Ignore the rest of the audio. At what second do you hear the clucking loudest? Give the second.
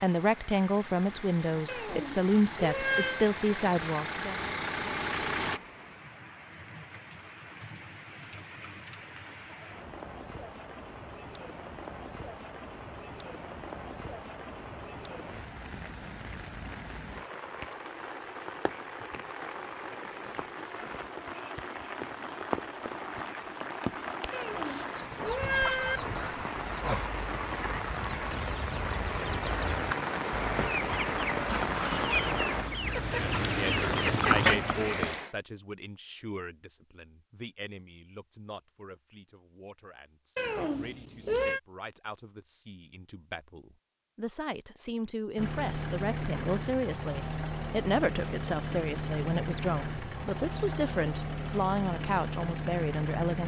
34 s.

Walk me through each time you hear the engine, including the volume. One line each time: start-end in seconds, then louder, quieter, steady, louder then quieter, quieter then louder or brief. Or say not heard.
0.0-5.6 louder
45.4-53.4 steady.